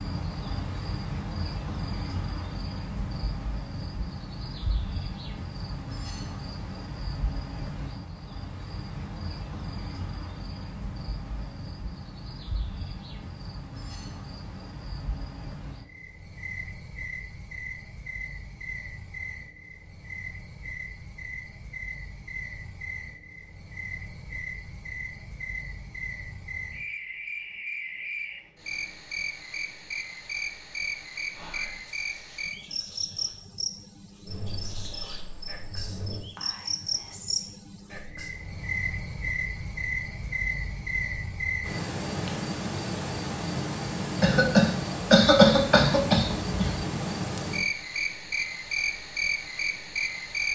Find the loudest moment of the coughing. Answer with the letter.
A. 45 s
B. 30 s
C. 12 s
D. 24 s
A.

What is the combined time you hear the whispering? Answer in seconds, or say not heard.
7 s.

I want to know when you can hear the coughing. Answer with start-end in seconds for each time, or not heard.
44.2-46.8.